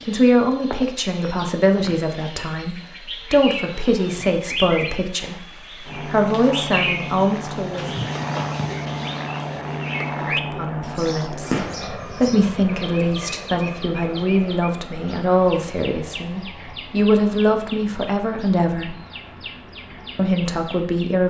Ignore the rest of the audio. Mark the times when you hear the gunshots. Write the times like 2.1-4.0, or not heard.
11.5-11.9.